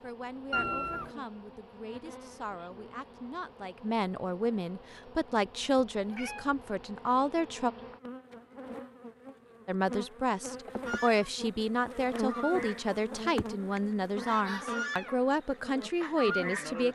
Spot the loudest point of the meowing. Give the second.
1 s.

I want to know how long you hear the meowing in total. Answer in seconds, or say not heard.
2 s.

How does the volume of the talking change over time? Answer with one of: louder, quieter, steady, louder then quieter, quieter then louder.
louder.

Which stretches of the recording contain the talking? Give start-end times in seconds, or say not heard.
0.0-7.7, 9.7-16.9.